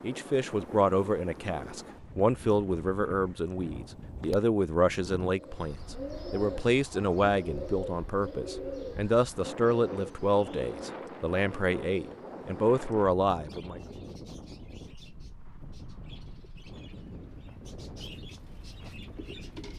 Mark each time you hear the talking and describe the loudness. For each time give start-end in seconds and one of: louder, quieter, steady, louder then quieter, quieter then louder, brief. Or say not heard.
0.0-13.8 steady.